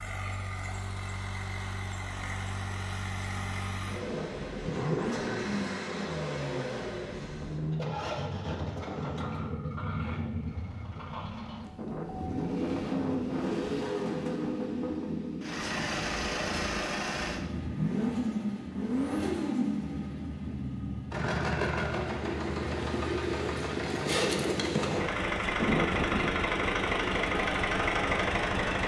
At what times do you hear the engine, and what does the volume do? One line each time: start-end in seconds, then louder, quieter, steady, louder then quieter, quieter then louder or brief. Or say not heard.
0.0-28.8 louder.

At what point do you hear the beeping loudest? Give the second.
26 s.